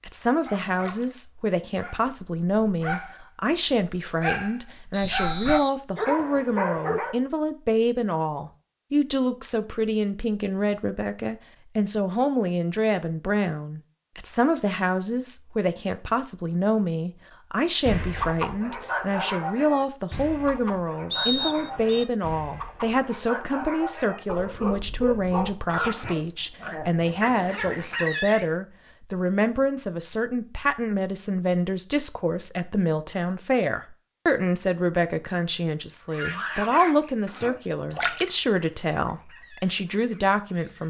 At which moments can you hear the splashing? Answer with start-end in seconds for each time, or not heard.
0.7-1.1, 37.9-38.5.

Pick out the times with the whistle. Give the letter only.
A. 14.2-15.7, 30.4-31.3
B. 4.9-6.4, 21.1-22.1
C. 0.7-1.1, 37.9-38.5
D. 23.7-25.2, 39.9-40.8
B.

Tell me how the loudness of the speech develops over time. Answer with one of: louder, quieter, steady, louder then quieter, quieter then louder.
steady.